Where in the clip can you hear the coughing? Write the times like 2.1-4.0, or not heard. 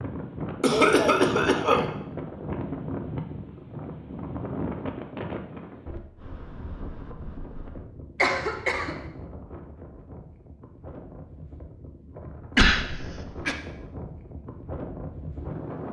0.6-1.9, 8.2-8.9, 12.6-13.6.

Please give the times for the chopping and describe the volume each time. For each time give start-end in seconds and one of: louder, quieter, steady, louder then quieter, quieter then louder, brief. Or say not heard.
not heard.